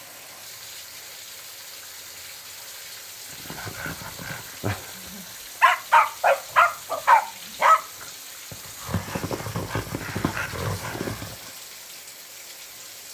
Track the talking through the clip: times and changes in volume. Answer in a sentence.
You can't hear the talking here.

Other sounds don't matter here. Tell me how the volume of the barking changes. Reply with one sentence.
The loudness of the barking goes up, then down.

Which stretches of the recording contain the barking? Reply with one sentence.
You can hear the barking from 3.5 to 11.3 s.